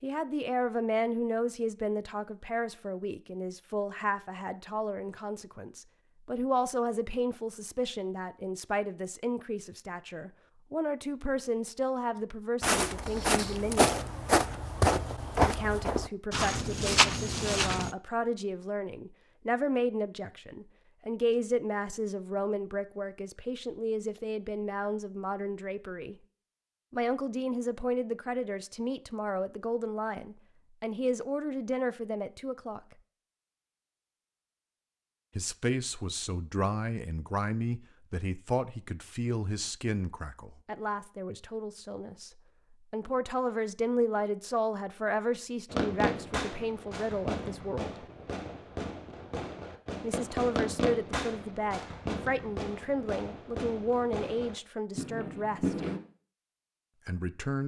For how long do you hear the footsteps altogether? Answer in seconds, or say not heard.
5 s.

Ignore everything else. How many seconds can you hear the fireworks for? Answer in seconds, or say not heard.
10 s.